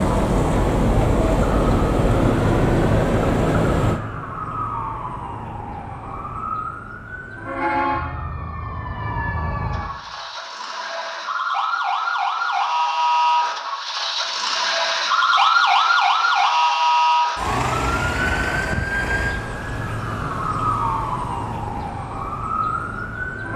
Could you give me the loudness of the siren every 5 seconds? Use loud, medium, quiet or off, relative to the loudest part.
medium, medium, loud, loud, medium.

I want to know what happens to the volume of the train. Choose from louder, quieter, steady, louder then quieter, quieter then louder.
steady.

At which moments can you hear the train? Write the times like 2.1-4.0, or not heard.
0.0-4.0.